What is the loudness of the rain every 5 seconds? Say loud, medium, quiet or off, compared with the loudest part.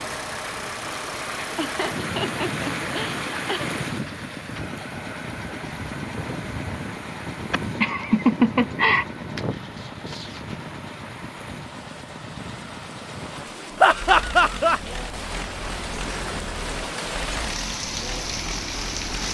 loud, medium, medium, loud.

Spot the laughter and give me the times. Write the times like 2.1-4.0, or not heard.
1.6-3.7, 7.5-9.1, 13.8-14.8.